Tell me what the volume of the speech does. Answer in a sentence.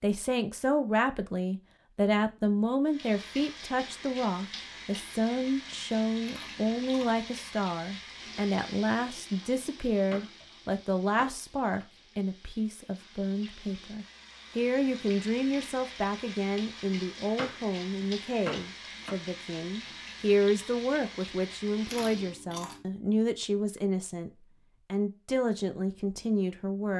The loudness of the speech stays about the same.